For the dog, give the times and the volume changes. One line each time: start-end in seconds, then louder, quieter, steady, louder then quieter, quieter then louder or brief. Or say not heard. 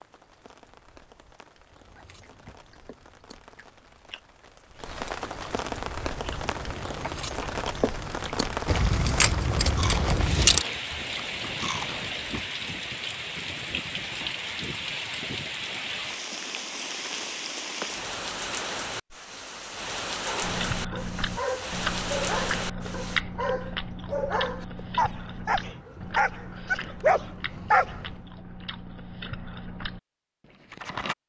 20.2-28.2 louder.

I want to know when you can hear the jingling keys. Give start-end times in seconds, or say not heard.
8.7-10.7.